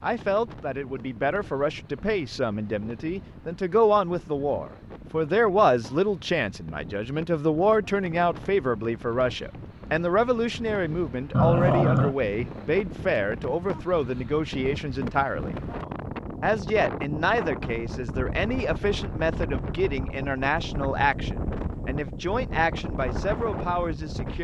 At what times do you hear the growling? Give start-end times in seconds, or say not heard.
11.3-12.2.